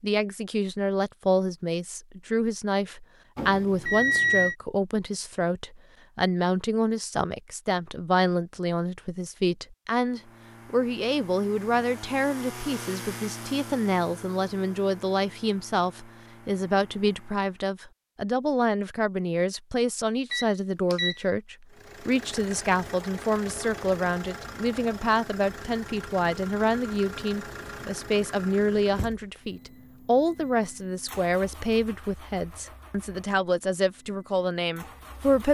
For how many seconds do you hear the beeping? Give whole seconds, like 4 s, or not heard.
2 s.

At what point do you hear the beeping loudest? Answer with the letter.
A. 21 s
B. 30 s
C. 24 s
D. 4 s
D.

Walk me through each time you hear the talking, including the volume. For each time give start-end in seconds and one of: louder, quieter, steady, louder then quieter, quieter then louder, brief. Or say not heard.
0.0-35.4 steady.